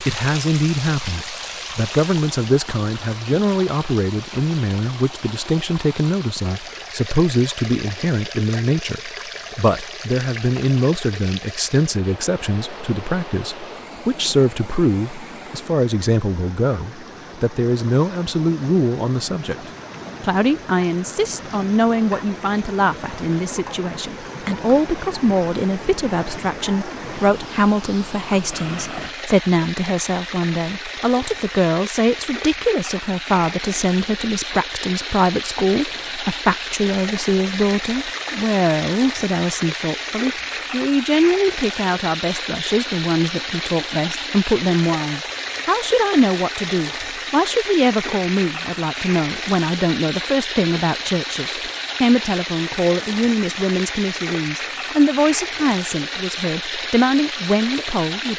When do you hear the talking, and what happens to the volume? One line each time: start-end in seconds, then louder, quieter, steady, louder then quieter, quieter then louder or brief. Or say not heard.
0.0-58.3 steady.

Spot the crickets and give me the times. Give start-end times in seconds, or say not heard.
not heard.